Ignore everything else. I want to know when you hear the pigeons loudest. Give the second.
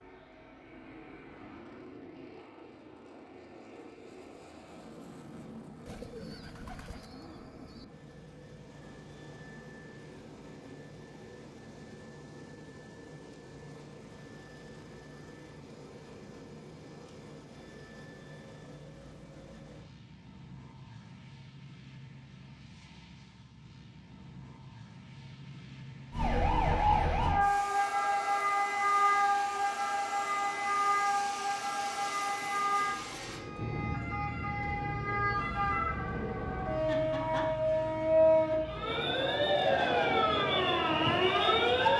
6 s.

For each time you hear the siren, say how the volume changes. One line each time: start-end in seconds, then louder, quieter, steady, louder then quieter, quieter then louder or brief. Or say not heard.
26.1-41.9 quieter then louder.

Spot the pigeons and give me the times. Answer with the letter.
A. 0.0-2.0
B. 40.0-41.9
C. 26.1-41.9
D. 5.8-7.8
D.